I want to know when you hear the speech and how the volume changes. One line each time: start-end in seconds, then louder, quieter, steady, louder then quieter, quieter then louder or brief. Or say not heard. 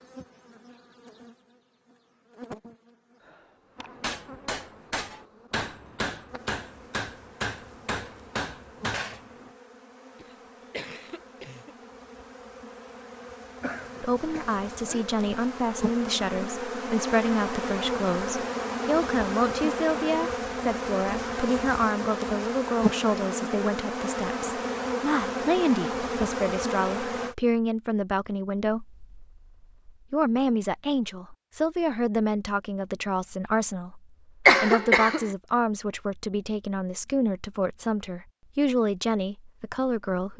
14.0-40.3 steady.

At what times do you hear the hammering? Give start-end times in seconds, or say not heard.
3.8-9.5.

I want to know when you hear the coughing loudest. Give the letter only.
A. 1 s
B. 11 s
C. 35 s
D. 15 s
C.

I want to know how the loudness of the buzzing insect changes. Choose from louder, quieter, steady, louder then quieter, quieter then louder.
louder.